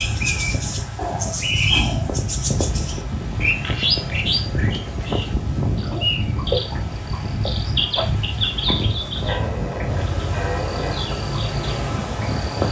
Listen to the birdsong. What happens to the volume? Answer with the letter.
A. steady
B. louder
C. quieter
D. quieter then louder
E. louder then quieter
C.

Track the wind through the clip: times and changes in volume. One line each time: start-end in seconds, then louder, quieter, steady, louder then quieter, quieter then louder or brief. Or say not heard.
0.0-12.6 steady.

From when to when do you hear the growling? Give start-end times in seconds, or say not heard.
0.9-2.2, 5.7-6.2, 9.2-11.0.